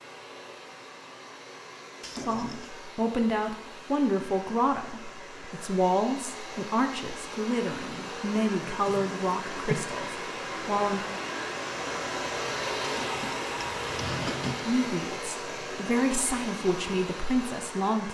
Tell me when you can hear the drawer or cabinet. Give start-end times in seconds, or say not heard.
2.0-2.7, 8.6-9.8, 12.8-14.7.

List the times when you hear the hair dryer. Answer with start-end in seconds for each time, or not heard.
0.0-18.0.